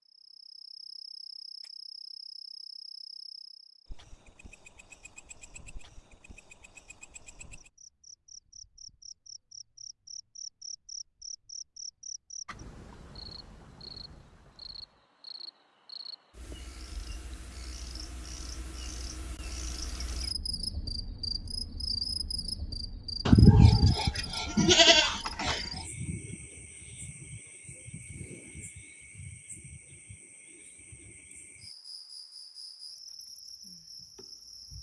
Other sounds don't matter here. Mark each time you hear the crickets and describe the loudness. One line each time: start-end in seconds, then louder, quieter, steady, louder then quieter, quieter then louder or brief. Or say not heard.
0.1-34.7 louder then quieter.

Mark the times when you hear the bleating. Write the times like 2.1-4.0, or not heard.
23.2-25.6.